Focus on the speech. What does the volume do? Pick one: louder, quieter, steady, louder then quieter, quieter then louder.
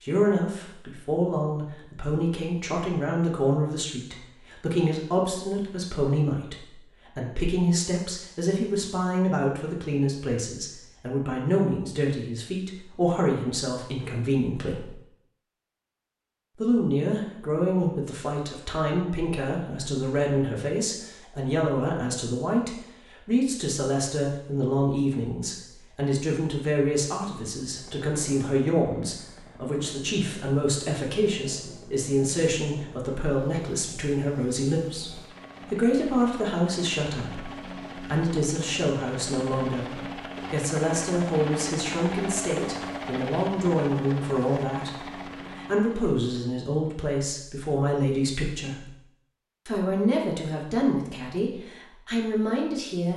steady.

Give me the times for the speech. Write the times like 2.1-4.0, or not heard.
0.0-14.9, 16.6-49.0, 49.6-53.1.